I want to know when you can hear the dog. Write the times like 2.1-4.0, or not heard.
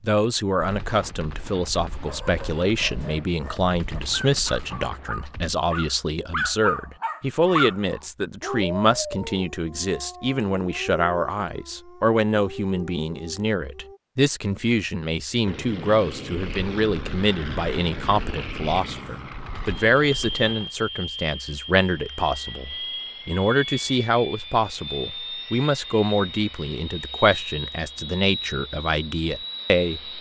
2.0-14.0.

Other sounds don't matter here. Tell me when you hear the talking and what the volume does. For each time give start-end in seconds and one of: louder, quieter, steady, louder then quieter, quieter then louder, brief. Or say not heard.
0.0-30.1 steady.